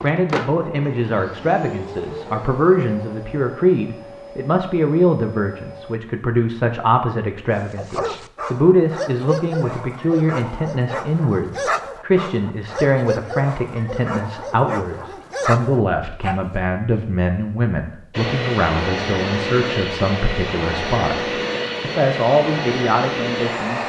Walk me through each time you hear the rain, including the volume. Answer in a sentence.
You can't hear the rain here.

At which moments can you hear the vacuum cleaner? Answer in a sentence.
You can hear the vacuum cleaner from 0.0 to 6.0 s and from 18.1 to 23.8 s.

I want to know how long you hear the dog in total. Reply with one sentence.
The dog can be heard for 9 seconds in total.